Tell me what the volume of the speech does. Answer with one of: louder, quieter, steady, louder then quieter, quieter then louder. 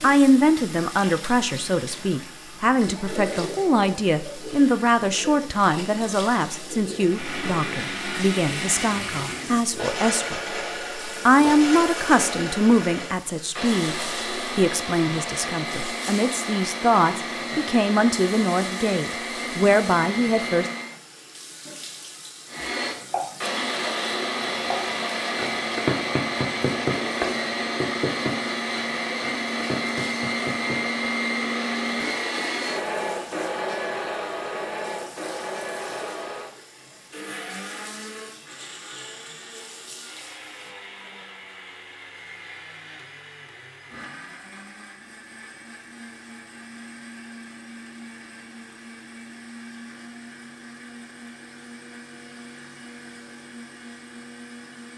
steady.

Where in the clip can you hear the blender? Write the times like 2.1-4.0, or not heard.
7.0-20.9, 22.4-54.9.